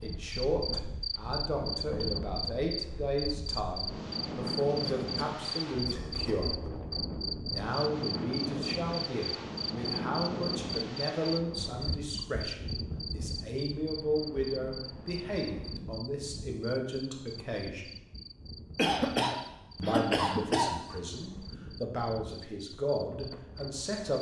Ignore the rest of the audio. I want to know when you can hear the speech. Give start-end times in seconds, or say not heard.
0.0-6.5, 7.5-17.9, 19.8-24.1.